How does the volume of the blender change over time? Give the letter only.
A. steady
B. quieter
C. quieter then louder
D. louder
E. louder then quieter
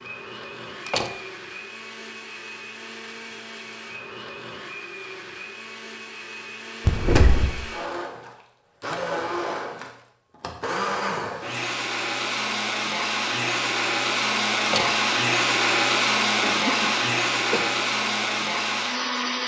D.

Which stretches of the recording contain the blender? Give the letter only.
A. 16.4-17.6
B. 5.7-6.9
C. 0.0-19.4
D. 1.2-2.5
C.